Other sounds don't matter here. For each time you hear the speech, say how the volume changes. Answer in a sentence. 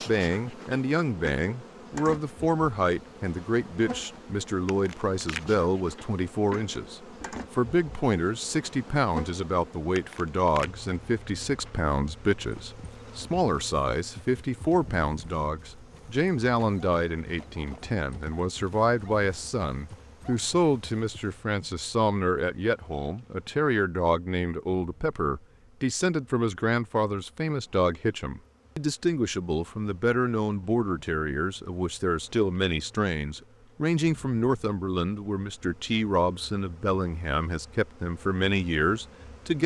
You can hear the speech from 0.1 to 39.6 s, at a steady volume.